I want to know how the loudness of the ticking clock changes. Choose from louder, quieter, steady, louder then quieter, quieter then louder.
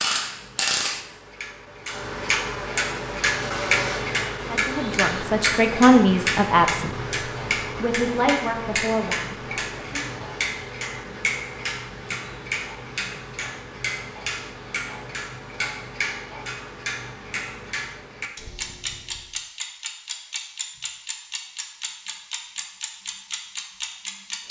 quieter.